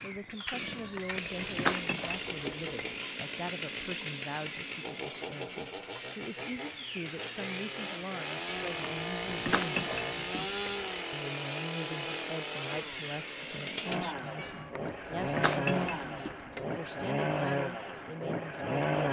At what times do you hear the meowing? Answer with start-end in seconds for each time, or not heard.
0.6-2.8, 8.4-10.9, 14.3-16.8.